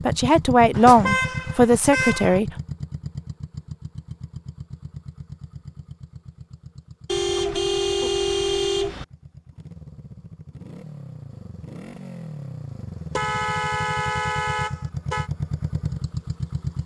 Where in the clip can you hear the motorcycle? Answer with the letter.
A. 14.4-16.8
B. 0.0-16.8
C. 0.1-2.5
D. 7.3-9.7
B.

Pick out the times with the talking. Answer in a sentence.
The talking can be heard from 0.1 to 2.5 s.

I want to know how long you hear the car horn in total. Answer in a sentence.
The car horn can be heard for 6 seconds in total.